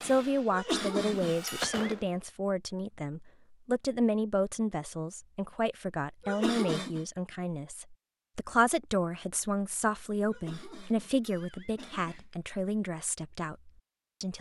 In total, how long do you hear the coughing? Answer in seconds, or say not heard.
4 s.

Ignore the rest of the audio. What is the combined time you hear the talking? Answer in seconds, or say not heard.
14 s.